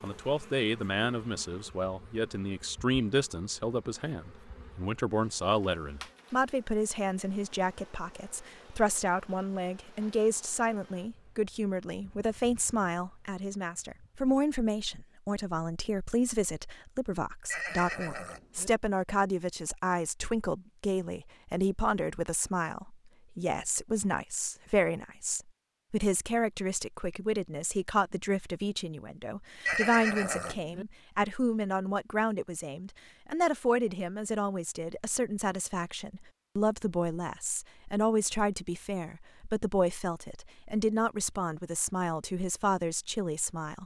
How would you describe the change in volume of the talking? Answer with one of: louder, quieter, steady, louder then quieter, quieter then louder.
steady.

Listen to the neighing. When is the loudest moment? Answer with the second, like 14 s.
30 s.